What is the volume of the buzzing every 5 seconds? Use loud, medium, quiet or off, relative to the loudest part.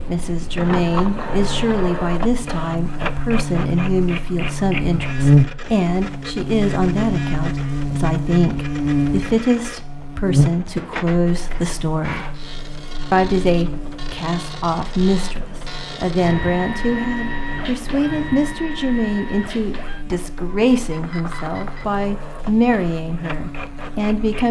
medium, loud, medium, quiet, quiet.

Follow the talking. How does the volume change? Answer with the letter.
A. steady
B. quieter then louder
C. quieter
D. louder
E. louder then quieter
A.